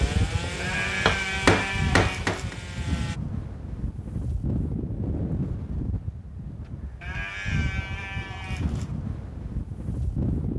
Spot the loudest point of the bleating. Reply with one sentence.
The volume of the bleating peaks at 1 second.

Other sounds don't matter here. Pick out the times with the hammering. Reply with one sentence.
The hammering can be heard from 0.0 to 2.5 s.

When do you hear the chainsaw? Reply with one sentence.
The chainsaw can be heard from 0.0 to 3.2 s.